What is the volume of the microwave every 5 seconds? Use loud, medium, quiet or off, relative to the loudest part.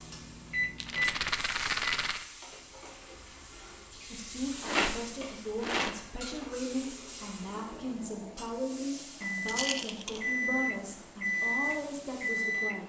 loud, medium, loud.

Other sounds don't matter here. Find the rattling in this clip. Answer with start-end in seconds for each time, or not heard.
0.8-2.2, 4.6-6.5, 9.4-10.2.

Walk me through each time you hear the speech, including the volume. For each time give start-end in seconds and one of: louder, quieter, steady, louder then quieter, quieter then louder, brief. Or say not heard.
4.1-12.8 steady.